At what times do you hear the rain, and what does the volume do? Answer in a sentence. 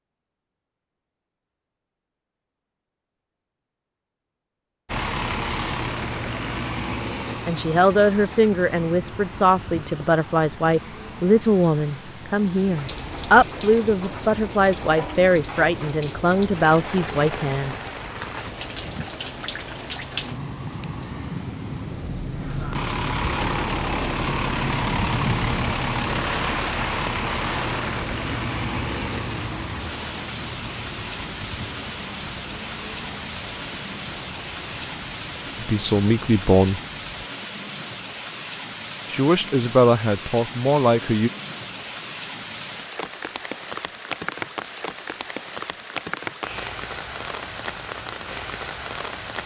The rain can be heard from 12.4 to 49.4 s, at a steady volume.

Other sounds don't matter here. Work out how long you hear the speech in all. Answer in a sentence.
The speech can be heard for 14 seconds in total.